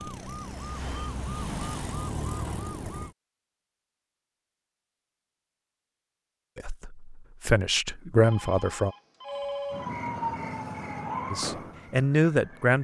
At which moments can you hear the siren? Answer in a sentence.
The siren can be heard from 0.0 to 3.1 s and from 9.2 to 12.8 s.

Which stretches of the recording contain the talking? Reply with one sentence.
You can hear the talking from 6.5 to 8.9 s and from 11.3 to 12.8 s.